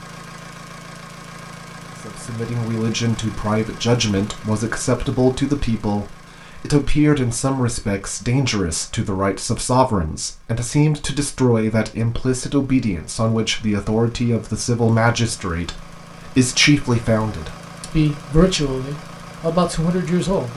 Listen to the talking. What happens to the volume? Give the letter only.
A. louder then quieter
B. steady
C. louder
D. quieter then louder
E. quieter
B.